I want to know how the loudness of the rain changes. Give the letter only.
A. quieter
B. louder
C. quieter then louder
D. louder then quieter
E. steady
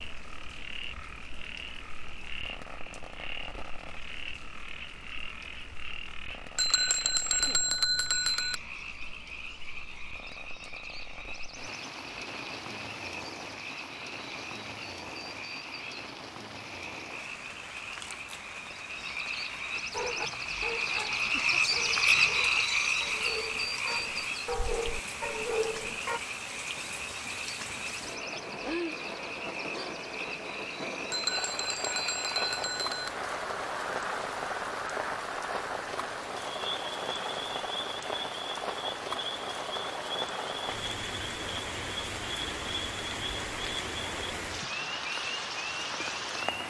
B.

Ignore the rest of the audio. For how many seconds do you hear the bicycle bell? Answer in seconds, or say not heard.
4 s.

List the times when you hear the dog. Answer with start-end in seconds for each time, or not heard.
19.9-26.2.